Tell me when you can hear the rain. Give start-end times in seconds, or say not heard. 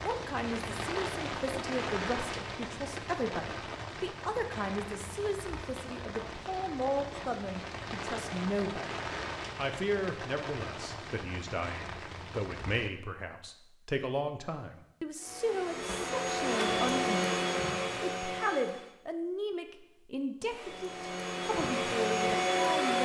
0.0-12.9.